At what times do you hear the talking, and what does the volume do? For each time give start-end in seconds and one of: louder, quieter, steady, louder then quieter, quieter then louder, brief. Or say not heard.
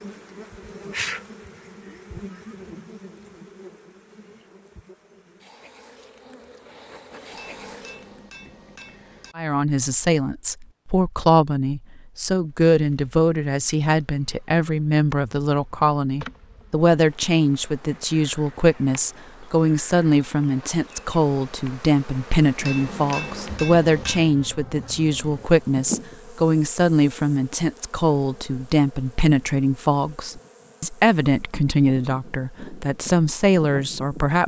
9.3-34.4 steady.